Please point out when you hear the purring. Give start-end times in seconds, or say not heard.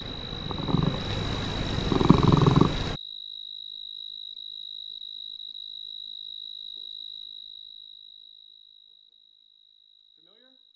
0.0-3.0.